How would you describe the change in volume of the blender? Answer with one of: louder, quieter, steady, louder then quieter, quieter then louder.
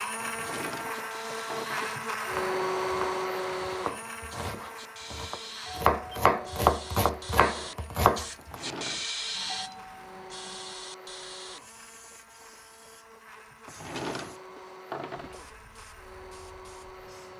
quieter.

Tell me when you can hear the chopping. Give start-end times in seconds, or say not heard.
2.2-8.6.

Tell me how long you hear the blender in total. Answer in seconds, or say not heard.
17 s.